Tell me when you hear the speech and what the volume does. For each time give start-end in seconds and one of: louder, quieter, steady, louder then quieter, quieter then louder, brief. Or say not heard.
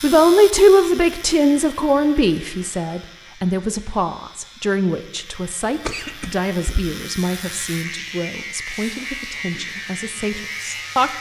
0.0-11.1 quieter.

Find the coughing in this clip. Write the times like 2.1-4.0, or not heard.
5.8-6.8.